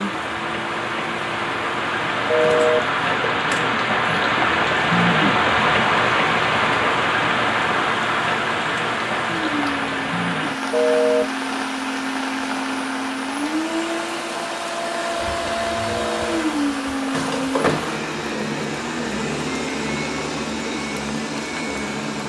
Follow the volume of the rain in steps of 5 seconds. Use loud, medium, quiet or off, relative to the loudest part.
loud, loud, medium, quiet, quiet.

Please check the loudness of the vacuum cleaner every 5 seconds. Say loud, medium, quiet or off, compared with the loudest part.
medium, medium, loud, loud, loud.